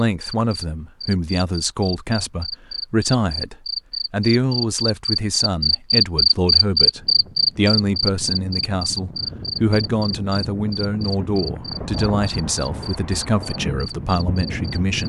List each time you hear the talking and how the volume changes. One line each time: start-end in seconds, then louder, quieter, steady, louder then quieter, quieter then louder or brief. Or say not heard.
0.0-15.0 steady.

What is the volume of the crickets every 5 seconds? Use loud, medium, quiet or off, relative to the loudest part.
medium, loud, quiet.